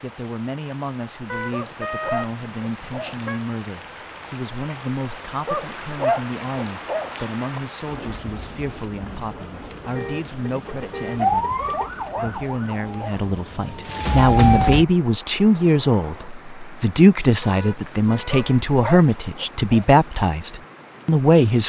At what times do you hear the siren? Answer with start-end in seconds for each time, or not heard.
11.2-14.8.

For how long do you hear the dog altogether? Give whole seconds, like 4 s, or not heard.
7 s.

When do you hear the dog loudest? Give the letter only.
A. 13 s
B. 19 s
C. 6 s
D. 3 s
C.